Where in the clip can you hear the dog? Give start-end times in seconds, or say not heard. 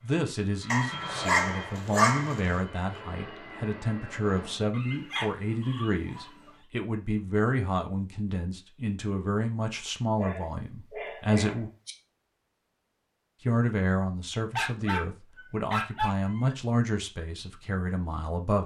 0.7-2.6, 4.7-6.5, 10.2-11.9, 14.6-16.6.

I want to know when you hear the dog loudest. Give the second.
2 s.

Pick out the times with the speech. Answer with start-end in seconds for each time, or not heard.
0.0-11.7, 13.4-18.6.